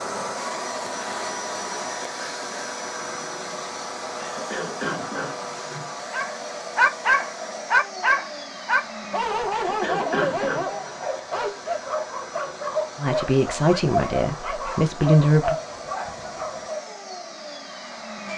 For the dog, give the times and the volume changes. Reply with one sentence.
The dog can be heard from 6.1 to 16.8 s, getting quieter.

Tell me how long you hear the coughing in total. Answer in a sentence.
You can hear the coughing for 3 seconds altogether.